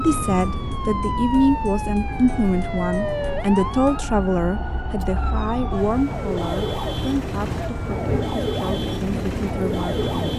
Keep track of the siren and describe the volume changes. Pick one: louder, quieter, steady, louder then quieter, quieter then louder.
quieter then louder.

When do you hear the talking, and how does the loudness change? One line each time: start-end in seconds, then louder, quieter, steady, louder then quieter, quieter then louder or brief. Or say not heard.
0.0-10.1 quieter.